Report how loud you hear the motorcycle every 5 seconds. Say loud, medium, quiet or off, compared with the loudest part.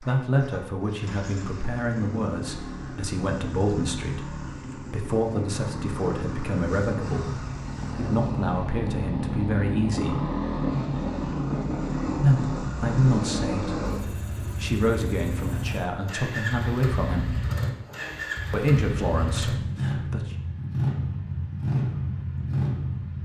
medium, loud, loud, loud, loud.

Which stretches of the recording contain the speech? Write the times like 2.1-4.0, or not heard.
0.0-10.2, 12.2-17.4, 18.5-20.4.